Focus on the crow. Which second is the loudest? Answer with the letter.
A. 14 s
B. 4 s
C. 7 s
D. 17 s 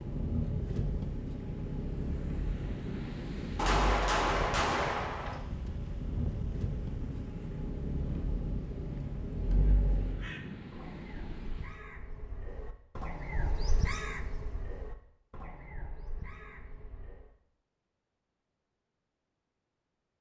A.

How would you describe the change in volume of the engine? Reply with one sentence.
The volume of the engine goes down, then up.